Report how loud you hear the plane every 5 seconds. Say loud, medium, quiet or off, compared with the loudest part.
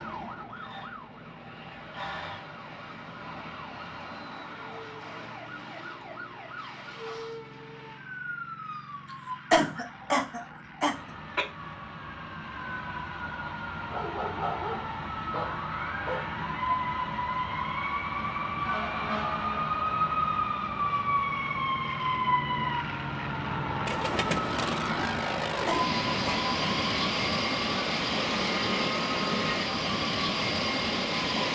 quiet, quiet, quiet, quiet, medium, loud, loud.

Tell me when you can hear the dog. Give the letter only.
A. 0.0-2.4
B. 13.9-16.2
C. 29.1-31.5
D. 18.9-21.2
B.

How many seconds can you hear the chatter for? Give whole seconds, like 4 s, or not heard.
not heard.